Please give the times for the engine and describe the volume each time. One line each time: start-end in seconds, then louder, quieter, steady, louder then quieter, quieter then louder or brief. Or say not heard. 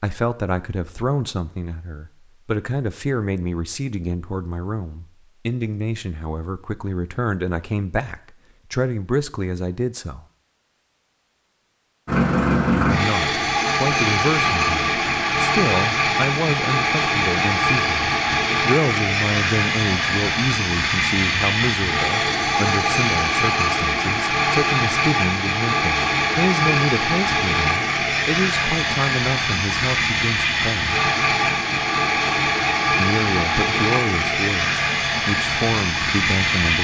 12.1-36.8 steady.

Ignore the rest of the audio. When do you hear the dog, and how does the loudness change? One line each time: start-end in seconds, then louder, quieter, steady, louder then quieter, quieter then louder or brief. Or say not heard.
not heard.